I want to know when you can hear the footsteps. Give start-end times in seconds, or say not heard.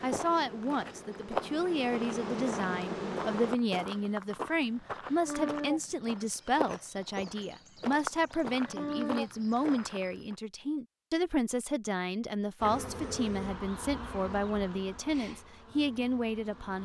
0.0-10.3.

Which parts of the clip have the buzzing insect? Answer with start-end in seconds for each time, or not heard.
0.0-3.5, 12.6-16.8.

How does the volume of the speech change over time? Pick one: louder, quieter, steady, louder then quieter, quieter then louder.
steady.